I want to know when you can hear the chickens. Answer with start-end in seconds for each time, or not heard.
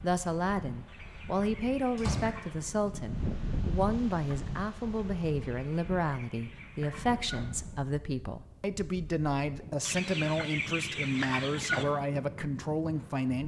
0.8-2.8, 5.5-7.5, 9.8-11.8.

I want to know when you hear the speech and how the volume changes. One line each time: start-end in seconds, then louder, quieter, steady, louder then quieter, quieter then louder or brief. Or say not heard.
0.0-13.4 steady.